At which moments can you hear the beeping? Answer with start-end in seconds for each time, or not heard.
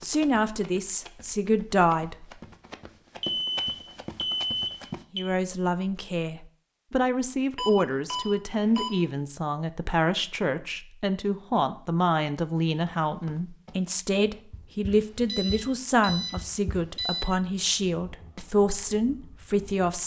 3.2-5.2, 7.5-8.9, 14.8-17.3.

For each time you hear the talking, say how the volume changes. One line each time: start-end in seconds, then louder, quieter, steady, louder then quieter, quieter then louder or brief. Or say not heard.
0.0-2.2 brief
5.1-20.0 steady.